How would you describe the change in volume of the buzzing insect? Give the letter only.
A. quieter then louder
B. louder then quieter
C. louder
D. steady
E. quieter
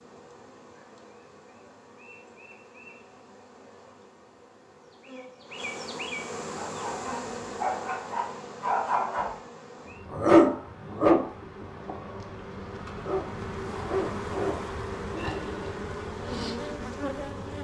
C.